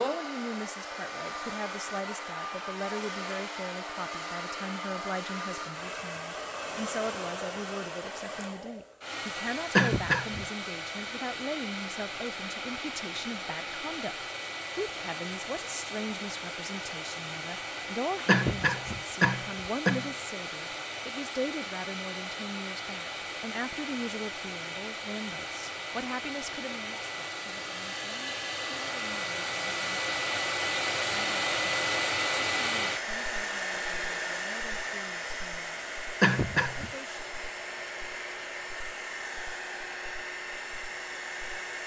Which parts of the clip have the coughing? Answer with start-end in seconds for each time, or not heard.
9.8-10.4, 18.2-20.1, 36.2-36.9.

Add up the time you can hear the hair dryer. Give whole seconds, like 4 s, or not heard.
42 s.